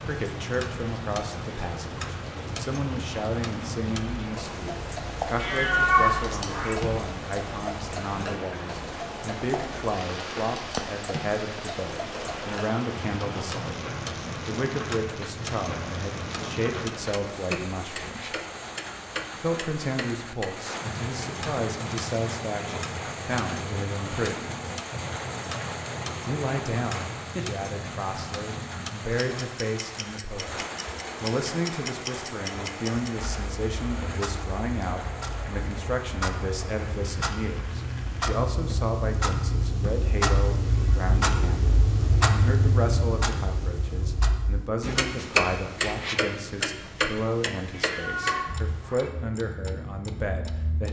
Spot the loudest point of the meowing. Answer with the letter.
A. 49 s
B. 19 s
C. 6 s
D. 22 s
C.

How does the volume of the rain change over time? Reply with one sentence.
The loudness of the rain stays about the same.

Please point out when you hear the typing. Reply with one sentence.
You can't hear the typing here.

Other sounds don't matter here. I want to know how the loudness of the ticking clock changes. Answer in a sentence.
The loudness of the ticking clock goes up.